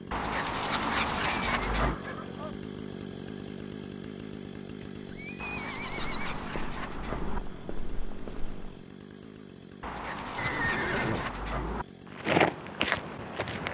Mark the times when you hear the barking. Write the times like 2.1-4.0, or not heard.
0.1-2.0, 5.4-7.4, 9.8-11.8.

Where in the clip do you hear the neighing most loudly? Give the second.
11 s.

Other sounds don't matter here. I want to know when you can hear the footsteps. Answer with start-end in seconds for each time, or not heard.
5.8-8.8, 12.1-13.6.